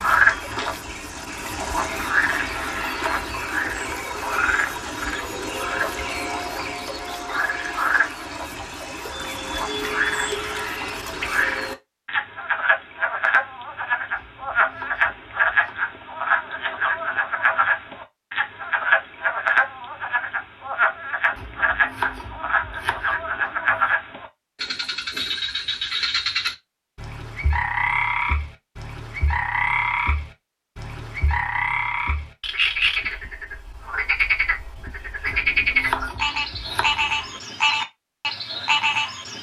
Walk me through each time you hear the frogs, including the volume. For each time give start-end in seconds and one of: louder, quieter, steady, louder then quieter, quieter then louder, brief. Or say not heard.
0.0-39.3 steady.